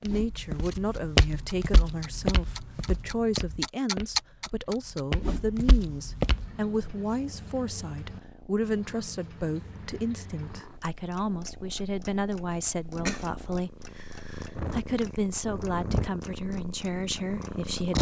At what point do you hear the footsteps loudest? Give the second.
1 s.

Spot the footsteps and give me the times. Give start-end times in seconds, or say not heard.
0.1-6.5.